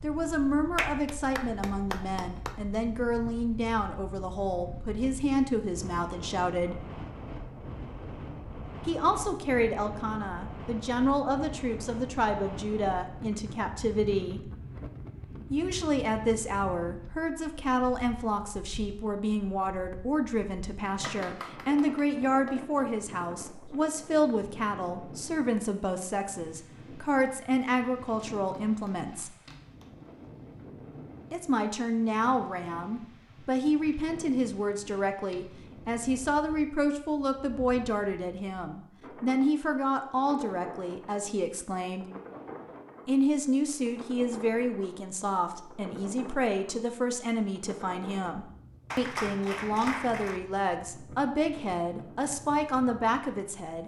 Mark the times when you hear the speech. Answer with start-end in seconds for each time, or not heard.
0.0-6.8, 8.8-14.5, 15.5-29.4, 31.3-42.0, 43.0-53.8.